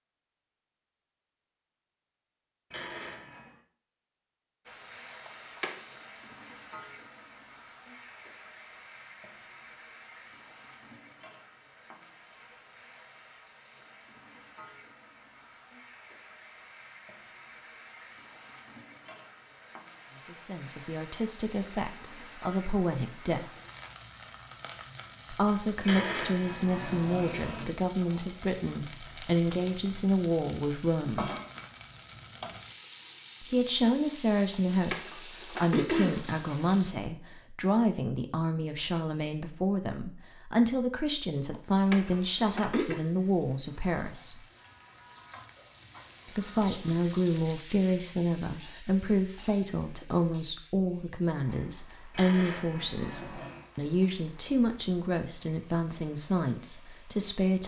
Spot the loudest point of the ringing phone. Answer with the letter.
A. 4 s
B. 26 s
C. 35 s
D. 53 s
B.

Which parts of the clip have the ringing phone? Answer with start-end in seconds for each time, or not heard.
2.7-3.6, 25.8-27.7, 52.1-53.7.